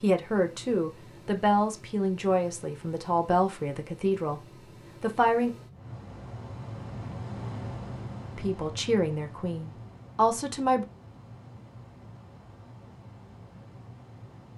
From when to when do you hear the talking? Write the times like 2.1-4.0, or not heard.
0.0-4.4, 5.0-5.5, 8.3-10.8.